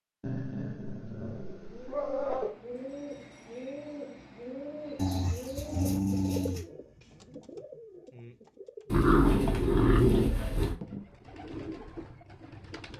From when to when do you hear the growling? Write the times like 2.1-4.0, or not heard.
0.2-2.5, 5.0-6.7, 8.9-10.8.